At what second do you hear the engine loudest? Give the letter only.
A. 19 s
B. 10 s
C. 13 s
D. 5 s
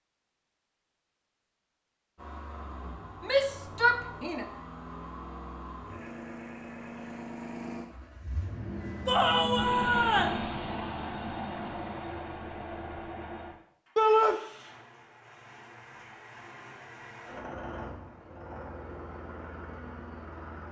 B.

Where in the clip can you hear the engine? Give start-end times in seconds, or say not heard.
2.1-20.6.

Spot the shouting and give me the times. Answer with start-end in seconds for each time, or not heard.
3.2-4.5, 9.1-10.4, 13.9-14.3.